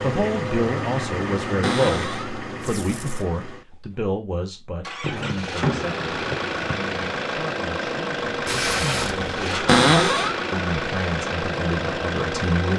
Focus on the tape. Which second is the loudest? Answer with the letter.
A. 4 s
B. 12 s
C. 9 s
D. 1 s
C.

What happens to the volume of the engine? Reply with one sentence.
The volume of the engine goes down, then up.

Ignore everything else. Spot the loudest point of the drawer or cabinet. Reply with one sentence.
The volume of the drawer or cabinet peaks at 10 seconds.